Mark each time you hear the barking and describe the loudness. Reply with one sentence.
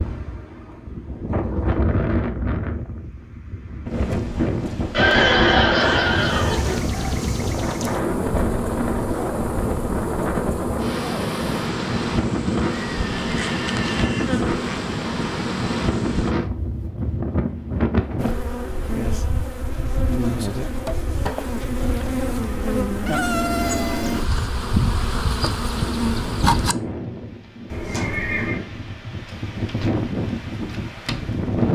The barking can't be heard in this clip.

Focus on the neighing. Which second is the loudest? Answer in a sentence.
The volume of the neighing peaks at 5 seconds.